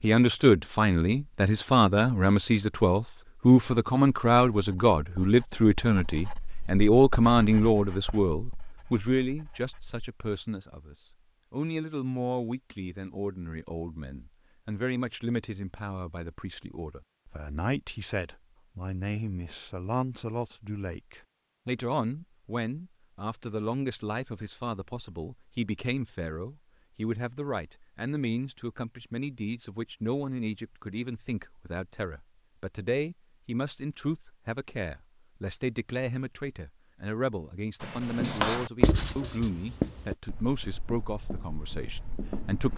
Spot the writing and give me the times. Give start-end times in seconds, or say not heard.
4.3-10.0, 37.8-42.7.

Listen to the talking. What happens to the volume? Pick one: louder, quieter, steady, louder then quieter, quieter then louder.
quieter.